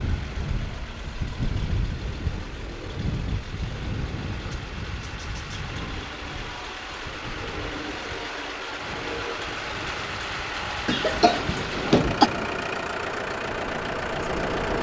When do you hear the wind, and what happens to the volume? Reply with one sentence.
The wind can be heard from 0.0 to 14.7 s, getting quieter then louder.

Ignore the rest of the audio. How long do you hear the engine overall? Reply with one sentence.
You can hear the engine for 15 seconds altogether.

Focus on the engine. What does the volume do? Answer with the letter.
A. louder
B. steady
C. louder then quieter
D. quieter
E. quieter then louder
A.